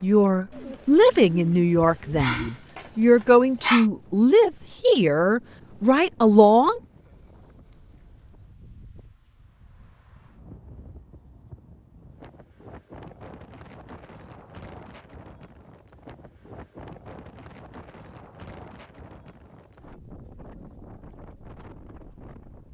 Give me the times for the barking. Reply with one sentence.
You can hear the barking from 2.1 to 3.9 s.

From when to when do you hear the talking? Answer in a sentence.
The talking can be heard from 0.0 to 6.8 s.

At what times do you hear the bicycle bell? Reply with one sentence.
The bicycle bell can't be heard in this clip.